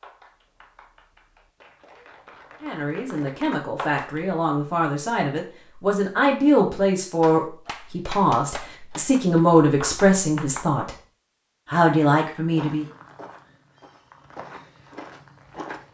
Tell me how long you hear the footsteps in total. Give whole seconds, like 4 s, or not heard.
3 s.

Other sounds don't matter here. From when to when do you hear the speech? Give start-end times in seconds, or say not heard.
2.6-10.9, 11.7-12.8.